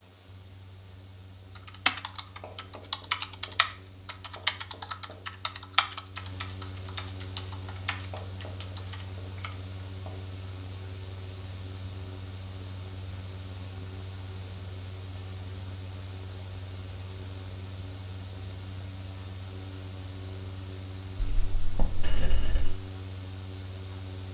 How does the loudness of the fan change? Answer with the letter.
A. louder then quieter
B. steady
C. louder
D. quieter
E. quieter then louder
C.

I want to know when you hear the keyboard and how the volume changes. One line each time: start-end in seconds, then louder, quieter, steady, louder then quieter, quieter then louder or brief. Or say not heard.
1.6-9.6 quieter.